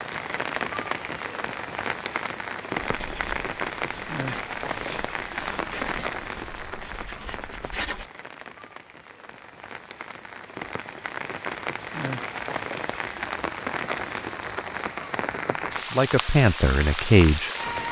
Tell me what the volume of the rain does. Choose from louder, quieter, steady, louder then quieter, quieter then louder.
quieter then louder.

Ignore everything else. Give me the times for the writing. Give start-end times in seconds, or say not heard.
2.9-8.1.